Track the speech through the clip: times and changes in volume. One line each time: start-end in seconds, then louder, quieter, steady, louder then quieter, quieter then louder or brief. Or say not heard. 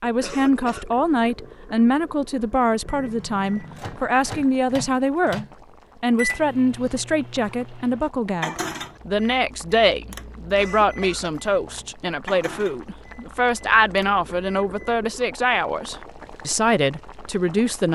0.0-17.9 steady.